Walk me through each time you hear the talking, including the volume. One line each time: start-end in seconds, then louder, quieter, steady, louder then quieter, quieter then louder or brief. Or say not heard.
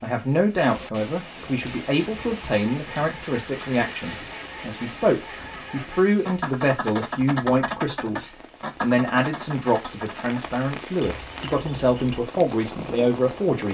0.0-13.7 steady.